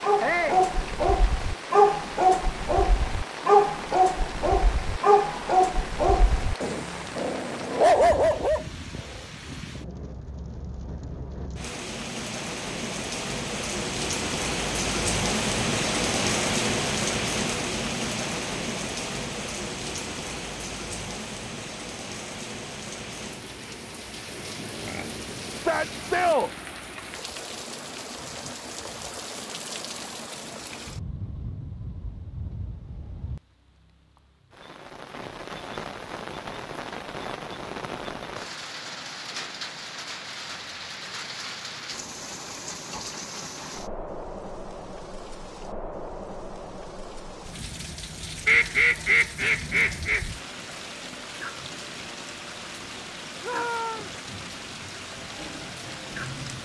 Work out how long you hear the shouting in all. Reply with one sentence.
The shouting can be heard for 2 seconds in total.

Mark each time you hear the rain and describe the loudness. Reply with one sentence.
The rain can be heard from 0.0 to 56.6 s, getting louder then quieter.